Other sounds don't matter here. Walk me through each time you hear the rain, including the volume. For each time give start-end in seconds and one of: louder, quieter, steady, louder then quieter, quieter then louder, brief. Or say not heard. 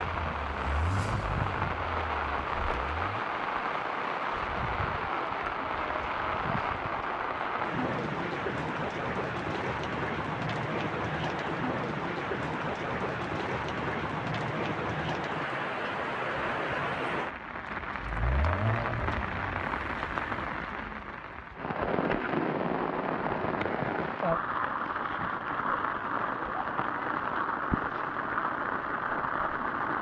0.0-29.9 steady.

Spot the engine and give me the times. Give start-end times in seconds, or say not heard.
0.1-3.2, 18.0-20.4.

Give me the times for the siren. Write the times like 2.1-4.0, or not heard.
not heard.